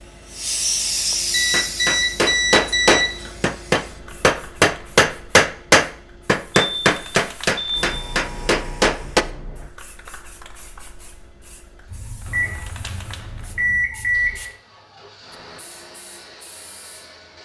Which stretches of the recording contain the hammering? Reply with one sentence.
The hammering can be heard from 1.5 to 9.2 s.